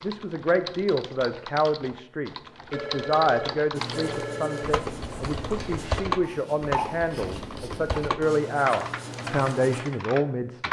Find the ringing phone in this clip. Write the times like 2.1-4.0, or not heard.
2.7-4.7.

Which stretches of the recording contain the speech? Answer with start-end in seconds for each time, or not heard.
0.0-10.6.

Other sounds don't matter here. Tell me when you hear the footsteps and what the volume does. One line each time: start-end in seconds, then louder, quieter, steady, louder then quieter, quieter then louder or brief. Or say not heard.
not heard.